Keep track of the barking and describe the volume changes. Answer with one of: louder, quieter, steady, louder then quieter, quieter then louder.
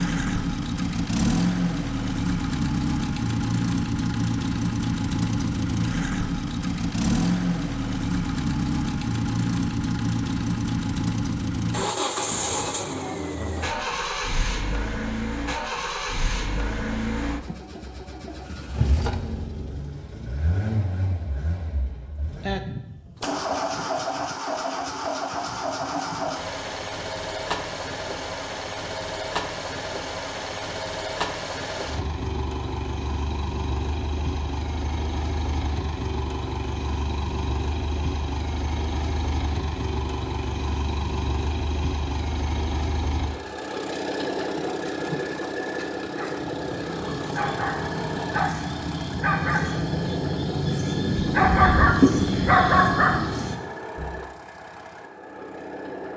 louder.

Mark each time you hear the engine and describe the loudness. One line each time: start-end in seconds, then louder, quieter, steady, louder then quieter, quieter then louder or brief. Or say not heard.
0.0-56.1 quieter.